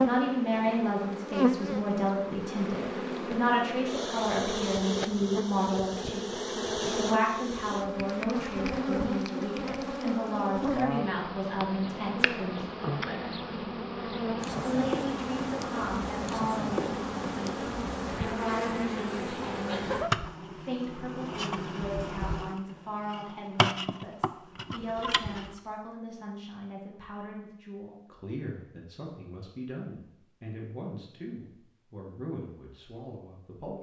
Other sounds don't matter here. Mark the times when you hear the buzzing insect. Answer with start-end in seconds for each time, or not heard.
0.0-25.6.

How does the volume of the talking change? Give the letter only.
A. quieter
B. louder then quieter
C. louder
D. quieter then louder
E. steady
A.